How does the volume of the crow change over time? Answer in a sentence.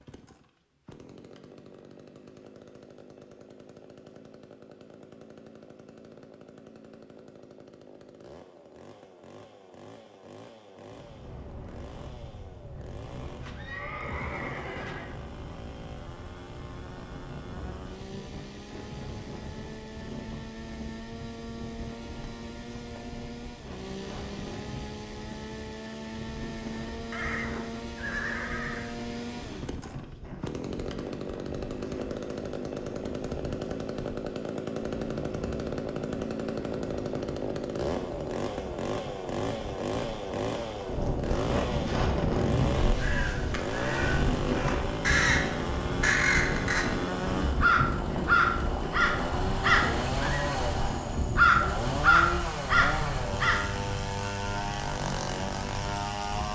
The loudness of the crow goes up.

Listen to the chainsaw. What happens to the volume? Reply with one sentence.
The volume of the chainsaw goes up.